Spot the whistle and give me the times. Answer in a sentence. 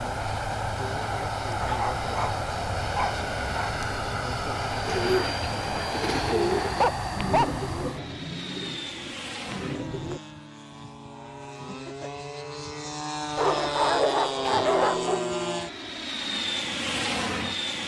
You can't hear the whistle here.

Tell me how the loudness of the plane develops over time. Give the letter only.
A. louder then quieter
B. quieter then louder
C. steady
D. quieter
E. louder
B.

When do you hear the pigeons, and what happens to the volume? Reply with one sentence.
The pigeons can be heard from 4.8 to 10.2 s, getting louder then quieter.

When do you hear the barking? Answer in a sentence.
The barking can be heard from 1.6 to 3.7 s, from 6.8 to 7.7 s and from 13.3 to 15.2 s.